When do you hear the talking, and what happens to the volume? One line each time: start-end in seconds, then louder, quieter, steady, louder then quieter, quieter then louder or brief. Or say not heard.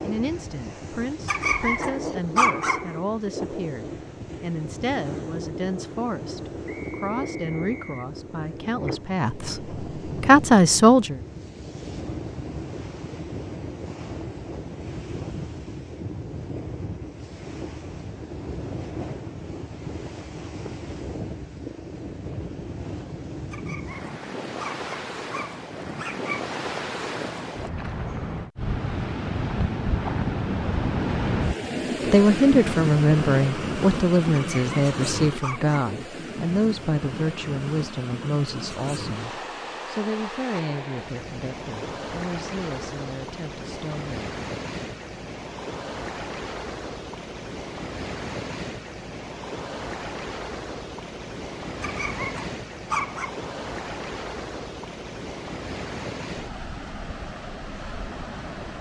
0.0-11.2 louder
32.0-44.2 quieter.